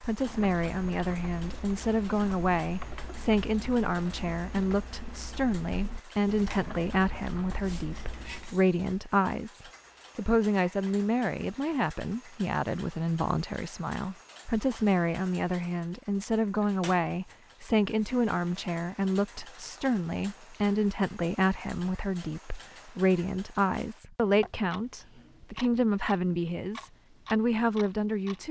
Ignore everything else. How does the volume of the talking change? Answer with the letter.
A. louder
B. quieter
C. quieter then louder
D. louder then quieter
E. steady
E.